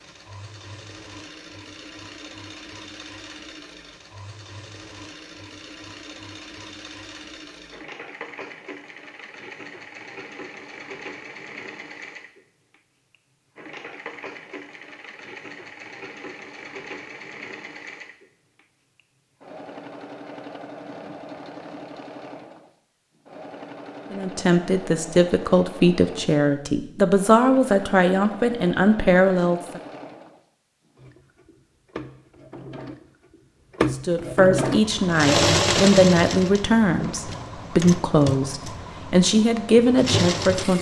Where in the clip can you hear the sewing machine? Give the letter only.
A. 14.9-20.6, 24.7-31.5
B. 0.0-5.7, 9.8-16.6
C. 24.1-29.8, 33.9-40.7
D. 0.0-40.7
D.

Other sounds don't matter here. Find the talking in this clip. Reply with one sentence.
You can hear the talking from 24.1 to 29.8 s and from 33.9 to 40.7 s.